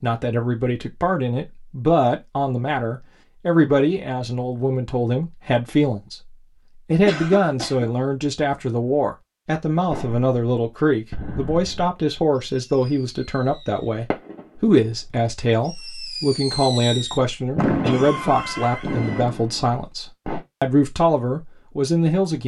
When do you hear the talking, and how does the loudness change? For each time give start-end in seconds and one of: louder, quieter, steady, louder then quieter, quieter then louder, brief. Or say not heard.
0.0-22.4 steady.